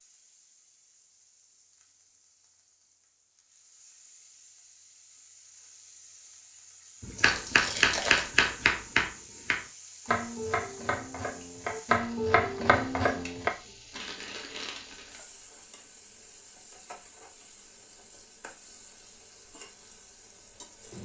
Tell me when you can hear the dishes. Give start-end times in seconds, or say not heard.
not heard.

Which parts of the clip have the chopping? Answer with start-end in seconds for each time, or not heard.
7.0-13.5.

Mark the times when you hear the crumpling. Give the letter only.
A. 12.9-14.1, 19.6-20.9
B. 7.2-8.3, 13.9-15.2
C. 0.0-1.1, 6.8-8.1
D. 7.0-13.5
B.